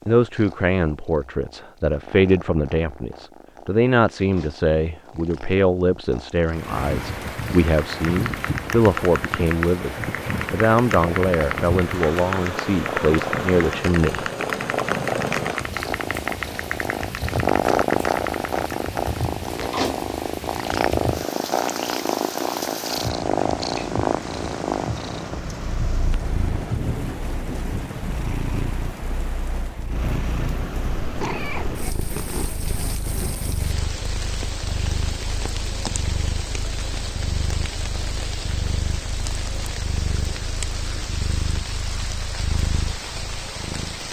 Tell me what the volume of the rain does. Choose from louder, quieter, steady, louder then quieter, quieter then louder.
steady.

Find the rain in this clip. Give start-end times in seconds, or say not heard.
6.5-44.0.